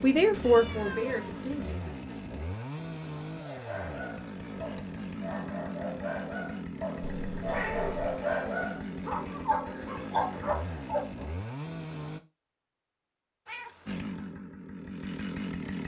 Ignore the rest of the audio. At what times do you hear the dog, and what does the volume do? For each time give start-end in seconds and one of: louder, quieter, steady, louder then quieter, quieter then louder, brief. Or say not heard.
3.4-11.2 louder.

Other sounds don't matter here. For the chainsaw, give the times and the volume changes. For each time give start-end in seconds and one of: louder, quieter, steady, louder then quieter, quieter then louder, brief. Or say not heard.
0.0-12.2 steady
13.8-15.8 brief.